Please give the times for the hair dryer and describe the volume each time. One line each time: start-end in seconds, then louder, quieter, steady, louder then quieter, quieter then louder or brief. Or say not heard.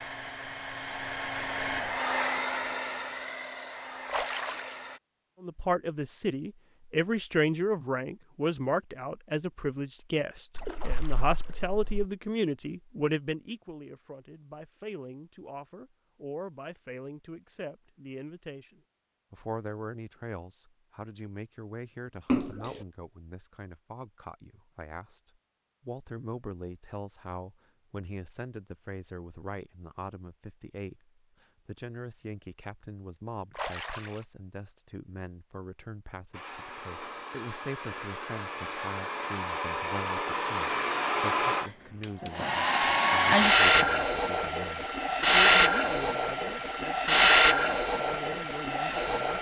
0.0-5.0 louder then quieter
36.3-49.3 louder.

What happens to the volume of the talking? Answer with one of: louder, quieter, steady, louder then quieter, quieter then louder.
quieter.